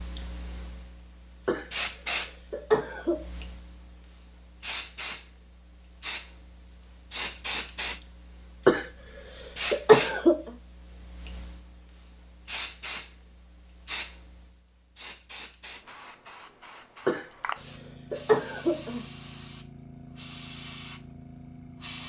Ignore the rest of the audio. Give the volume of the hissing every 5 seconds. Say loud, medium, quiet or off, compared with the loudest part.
loud, loud, loud, medium, medium.